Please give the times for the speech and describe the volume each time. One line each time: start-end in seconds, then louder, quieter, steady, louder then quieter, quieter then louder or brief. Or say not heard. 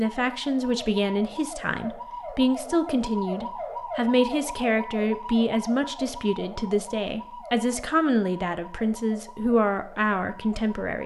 0.0-11.0 steady.